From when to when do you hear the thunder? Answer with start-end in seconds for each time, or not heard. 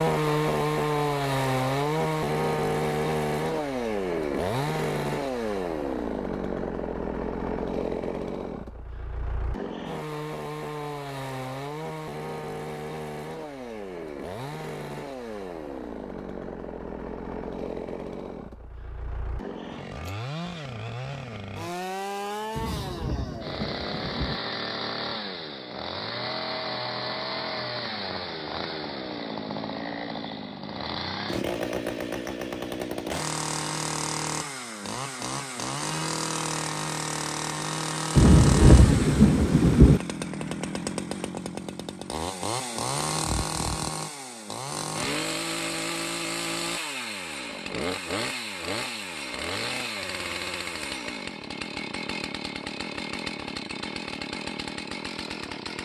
22.6-24.4, 38.1-40.0.